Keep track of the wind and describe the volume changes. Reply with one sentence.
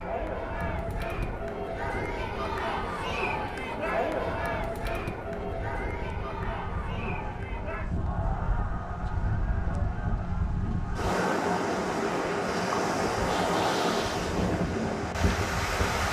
The volume of the wind goes up.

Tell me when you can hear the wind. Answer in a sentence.
You can hear the wind from 0.0 to 16.0 s.